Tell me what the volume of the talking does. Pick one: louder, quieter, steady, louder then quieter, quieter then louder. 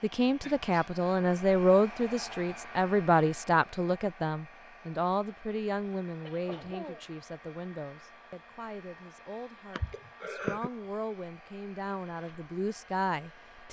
quieter then louder.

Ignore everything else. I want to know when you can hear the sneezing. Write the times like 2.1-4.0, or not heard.
0.4-0.9, 5.3-7.0, 9.8-10.7.